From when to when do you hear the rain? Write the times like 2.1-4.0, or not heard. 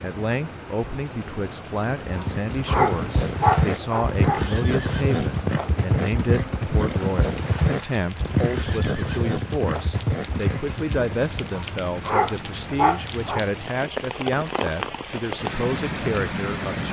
0.0-16.8.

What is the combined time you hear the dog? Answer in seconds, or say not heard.
4 s.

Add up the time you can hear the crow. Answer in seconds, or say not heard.
not heard.